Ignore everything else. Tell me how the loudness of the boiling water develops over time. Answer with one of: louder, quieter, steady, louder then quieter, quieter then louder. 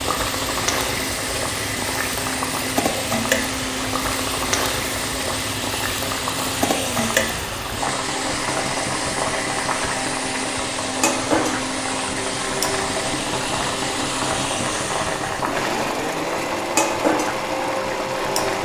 steady.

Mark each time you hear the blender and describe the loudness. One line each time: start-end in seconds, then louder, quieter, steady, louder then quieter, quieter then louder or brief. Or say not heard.
0.0-18.6 steady.